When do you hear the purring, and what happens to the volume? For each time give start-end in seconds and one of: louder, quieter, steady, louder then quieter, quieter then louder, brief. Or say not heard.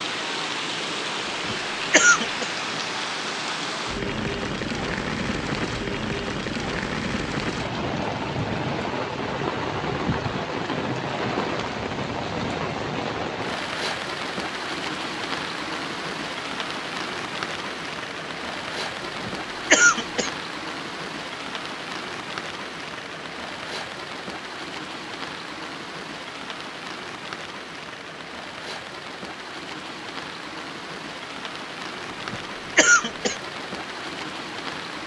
not heard.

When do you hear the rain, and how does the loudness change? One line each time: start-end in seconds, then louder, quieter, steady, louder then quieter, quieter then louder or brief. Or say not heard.
0.0-35.0 quieter.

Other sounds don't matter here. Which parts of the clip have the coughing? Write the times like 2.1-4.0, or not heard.
1.2-2.5, 19.2-20.3, 32.1-33.4.